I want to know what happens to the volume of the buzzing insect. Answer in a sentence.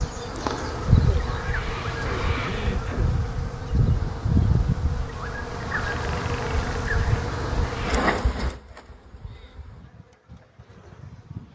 The loudness of the buzzing insect goes down.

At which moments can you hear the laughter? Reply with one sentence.
You can hear the laughter from 0.9 to 3.1 s.